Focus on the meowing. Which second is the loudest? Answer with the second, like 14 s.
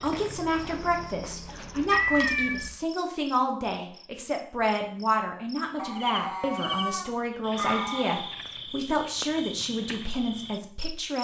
2 s.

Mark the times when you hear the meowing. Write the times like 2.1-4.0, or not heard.
1.9-2.7, 5.8-8.3.